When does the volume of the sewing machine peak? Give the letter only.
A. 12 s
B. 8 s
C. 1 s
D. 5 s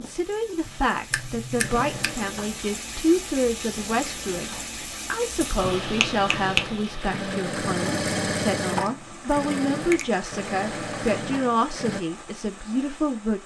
B.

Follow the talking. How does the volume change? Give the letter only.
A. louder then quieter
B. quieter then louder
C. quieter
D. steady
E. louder
D.